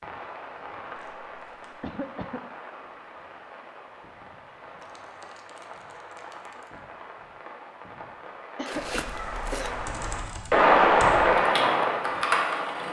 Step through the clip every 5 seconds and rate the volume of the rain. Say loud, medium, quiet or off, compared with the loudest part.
quiet, quiet, loud.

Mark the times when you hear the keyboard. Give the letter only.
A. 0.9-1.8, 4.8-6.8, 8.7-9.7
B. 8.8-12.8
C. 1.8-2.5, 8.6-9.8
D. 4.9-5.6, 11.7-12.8
B.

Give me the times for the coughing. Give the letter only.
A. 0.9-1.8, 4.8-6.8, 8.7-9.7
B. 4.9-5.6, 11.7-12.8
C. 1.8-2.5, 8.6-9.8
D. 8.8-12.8
C.